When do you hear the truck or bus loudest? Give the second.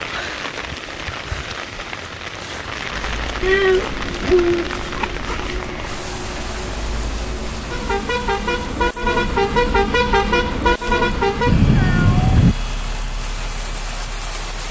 10 s.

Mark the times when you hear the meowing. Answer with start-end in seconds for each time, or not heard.
3.4-4.7, 11.4-12.6.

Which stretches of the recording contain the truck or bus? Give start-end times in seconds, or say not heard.
2.9-14.6.